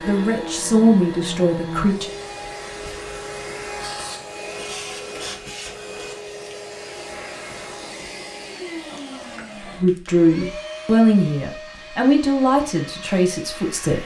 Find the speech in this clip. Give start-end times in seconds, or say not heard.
0.1-2.1, 9.8-14.0.